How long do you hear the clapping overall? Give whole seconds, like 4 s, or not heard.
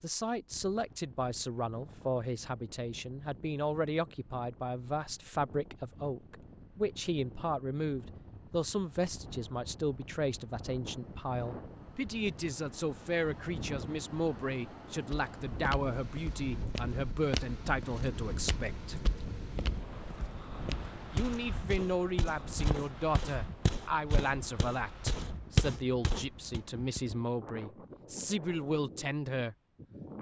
not heard.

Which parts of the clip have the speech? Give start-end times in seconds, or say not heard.
0.0-19.0, 21.1-29.6.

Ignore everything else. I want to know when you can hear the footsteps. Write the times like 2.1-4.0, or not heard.
15.1-26.6.